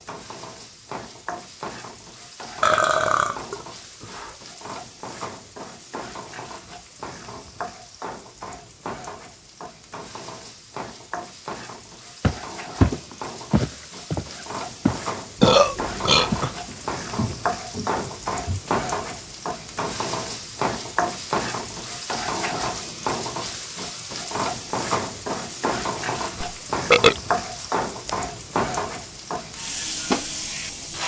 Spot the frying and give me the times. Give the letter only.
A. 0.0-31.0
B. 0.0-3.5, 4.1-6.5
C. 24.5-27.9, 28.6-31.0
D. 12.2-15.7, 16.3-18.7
A.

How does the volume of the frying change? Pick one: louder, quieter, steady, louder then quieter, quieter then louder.
louder.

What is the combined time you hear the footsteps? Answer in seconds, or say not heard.
6 s.